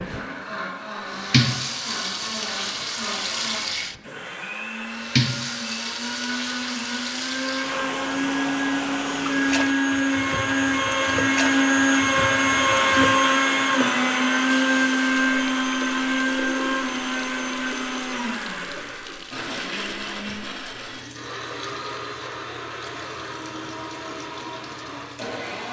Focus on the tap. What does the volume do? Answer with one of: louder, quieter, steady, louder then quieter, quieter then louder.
quieter.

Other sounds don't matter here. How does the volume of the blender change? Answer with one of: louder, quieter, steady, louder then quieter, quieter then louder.
louder then quieter.